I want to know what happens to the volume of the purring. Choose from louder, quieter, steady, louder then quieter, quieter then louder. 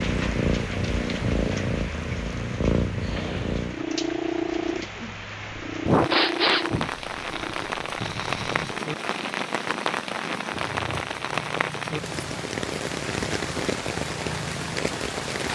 quieter.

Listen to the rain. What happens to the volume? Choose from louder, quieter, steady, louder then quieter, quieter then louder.
louder.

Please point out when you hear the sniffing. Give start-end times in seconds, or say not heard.
5.8-6.9.